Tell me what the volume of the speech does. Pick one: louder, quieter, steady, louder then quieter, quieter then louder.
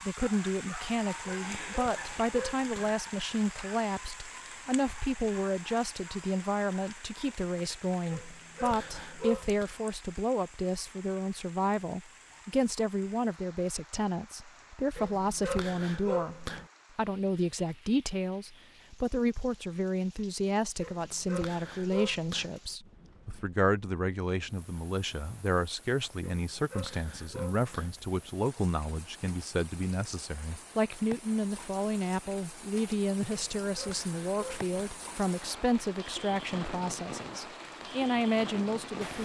steady.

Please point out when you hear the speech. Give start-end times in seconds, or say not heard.
0.1-16.4, 16.9-39.1.